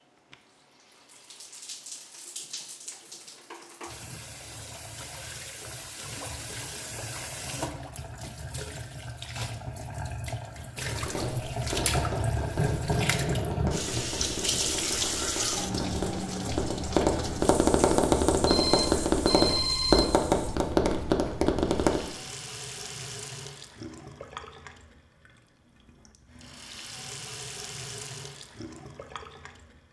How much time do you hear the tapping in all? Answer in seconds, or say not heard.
11 s.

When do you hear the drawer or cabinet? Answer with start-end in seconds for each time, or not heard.
not heard.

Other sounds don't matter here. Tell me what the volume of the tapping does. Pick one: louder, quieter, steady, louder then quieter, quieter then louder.
louder.